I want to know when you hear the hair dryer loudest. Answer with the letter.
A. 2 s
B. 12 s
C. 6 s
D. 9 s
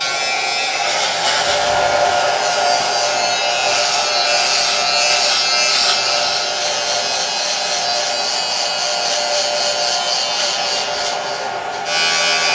A.